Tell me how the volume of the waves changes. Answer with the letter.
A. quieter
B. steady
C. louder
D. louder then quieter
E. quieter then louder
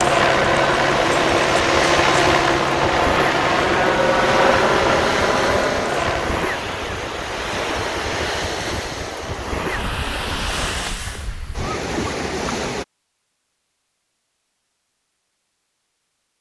B.